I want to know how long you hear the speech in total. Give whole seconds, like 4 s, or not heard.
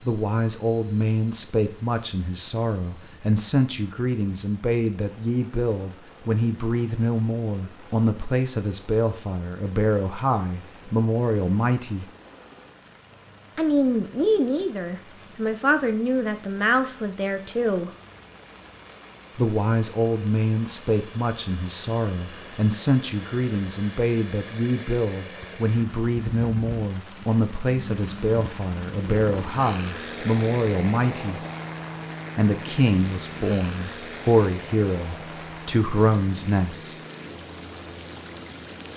33 s.